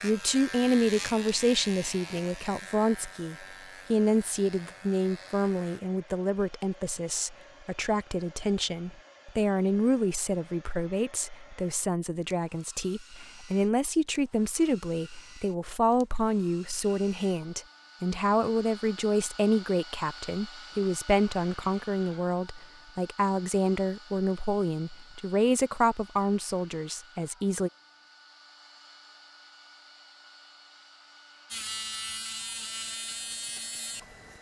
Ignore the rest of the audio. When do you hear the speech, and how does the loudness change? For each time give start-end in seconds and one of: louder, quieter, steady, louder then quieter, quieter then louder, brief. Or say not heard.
0.0-27.7 steady.